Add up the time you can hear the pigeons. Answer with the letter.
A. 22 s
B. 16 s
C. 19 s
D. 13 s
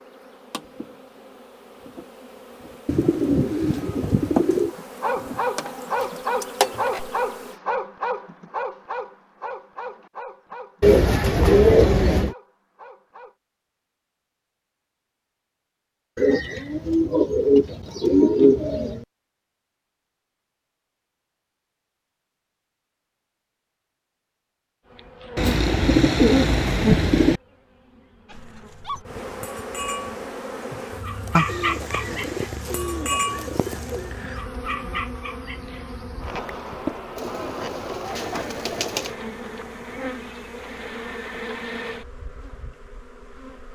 D.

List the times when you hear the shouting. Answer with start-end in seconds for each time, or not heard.
not heard.